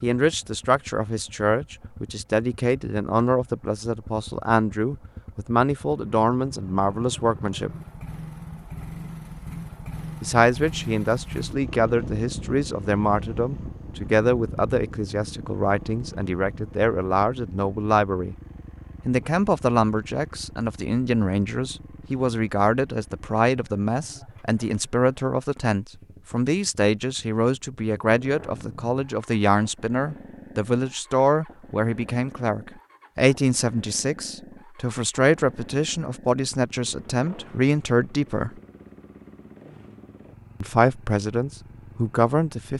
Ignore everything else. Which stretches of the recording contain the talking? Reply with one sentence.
You can hear the talking from 0.0 to 7.8 s, from 10.2 to 18.4 s, from 19.1 to 38.5 s and from 40.6 to 42.7 s.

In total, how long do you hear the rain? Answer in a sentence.
You can't hear the rain here.